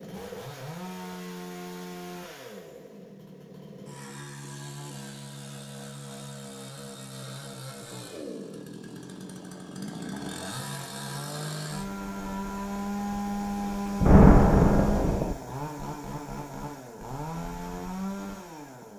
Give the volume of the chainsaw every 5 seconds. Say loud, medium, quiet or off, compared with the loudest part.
medium, medium, loud, medium.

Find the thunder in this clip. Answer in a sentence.
The thunder can be heard from 14.0 to 15.3 s.